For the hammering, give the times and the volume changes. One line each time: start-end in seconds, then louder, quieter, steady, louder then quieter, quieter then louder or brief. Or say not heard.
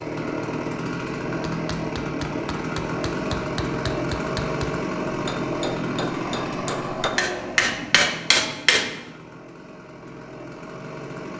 1.6-8.9 louder.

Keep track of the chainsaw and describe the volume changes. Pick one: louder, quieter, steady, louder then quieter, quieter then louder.
quieter.